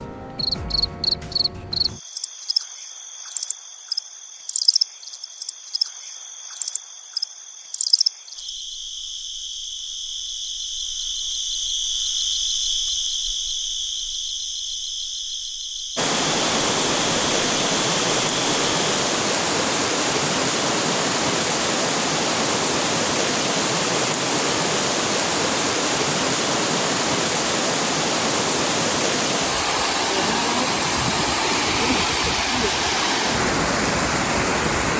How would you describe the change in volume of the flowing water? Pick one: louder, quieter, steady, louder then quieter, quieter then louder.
steady.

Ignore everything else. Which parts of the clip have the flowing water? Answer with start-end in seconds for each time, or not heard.
15.9-34.9.